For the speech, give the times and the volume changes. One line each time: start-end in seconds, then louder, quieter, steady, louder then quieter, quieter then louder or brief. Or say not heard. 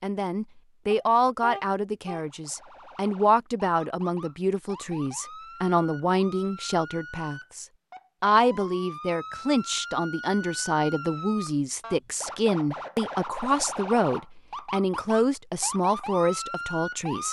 0.0-17.2 steady.